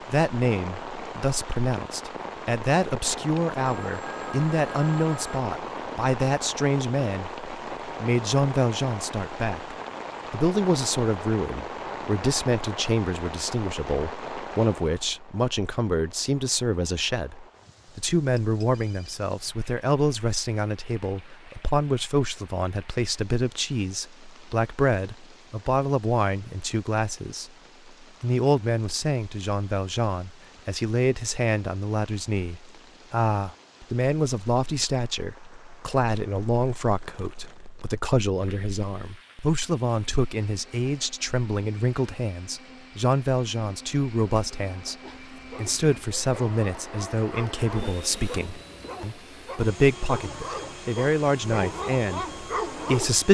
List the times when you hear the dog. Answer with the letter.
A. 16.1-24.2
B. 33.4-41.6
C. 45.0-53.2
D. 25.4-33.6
C.